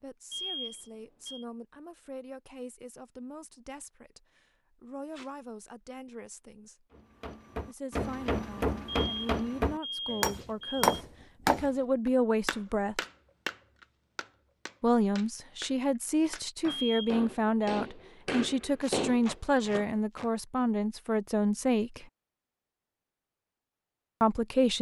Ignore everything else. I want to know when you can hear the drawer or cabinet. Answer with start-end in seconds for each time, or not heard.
not heard.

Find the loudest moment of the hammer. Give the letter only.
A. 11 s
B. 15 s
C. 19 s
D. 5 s
A.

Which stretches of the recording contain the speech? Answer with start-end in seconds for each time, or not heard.
0.0-6.8, 7.7-13.0, 14.8-22.1, 24.2-24.7.